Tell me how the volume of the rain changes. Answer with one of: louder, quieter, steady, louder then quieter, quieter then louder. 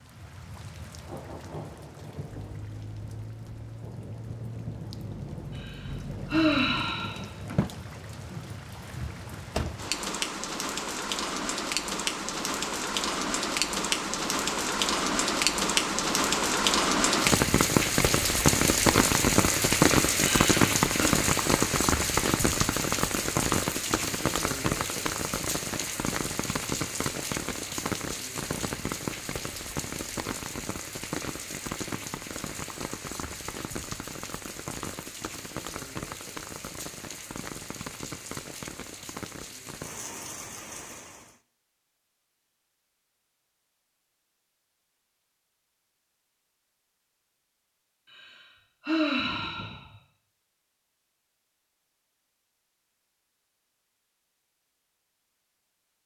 louder then quieter.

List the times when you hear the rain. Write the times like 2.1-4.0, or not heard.
0.0-41.4.